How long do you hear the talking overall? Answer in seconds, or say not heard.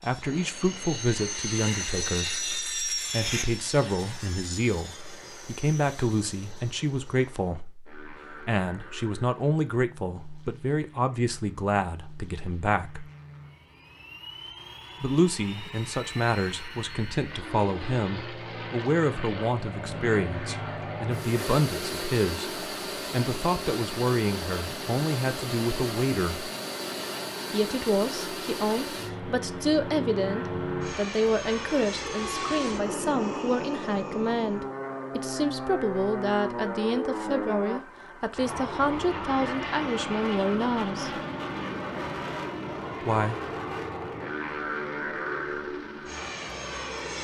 39 s.